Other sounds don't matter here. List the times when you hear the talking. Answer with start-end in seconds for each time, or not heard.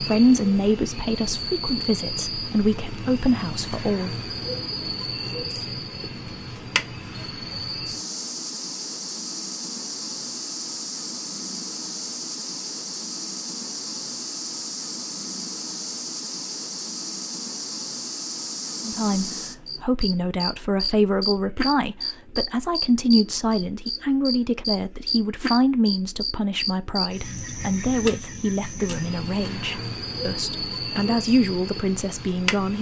0.0-4.2, 18.9-32.7.